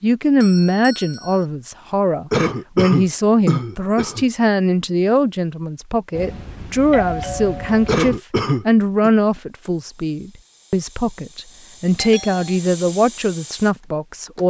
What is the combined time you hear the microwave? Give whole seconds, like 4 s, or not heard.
not heard.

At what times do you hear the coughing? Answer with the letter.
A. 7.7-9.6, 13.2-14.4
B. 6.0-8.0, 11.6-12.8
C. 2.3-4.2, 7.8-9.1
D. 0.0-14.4
C.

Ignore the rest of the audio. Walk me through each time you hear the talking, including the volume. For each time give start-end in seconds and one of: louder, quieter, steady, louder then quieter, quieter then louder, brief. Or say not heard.
0.0-14.4 steady.